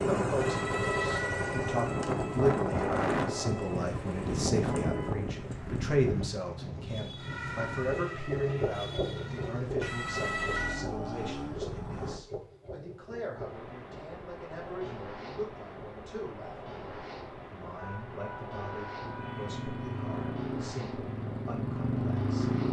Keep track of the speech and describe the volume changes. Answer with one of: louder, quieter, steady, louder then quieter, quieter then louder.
quieter.